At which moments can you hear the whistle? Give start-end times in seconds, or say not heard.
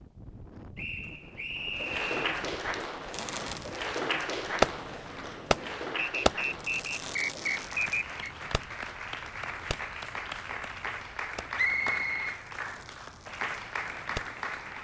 0.8-2.4, 6.0-8.3, 11.6-12.4.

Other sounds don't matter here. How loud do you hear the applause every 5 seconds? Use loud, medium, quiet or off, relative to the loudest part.
loud, medium, loud.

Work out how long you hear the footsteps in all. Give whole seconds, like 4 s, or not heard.
not heard.